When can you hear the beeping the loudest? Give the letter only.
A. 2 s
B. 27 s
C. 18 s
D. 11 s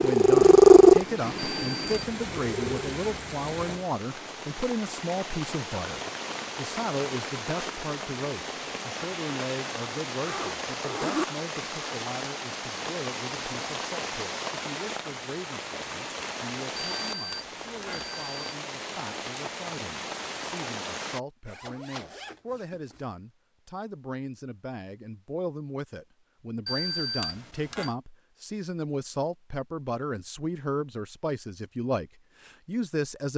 B.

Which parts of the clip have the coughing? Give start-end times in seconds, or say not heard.
not heard.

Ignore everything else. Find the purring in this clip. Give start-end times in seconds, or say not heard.
0.0-2.9.